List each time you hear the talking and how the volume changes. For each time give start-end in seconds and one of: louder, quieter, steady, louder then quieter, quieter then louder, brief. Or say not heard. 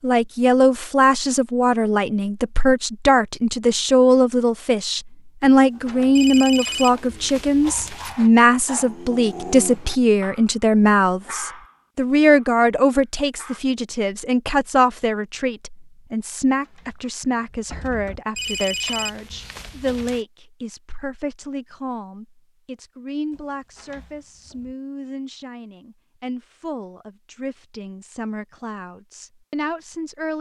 0.0-30.3 quieter.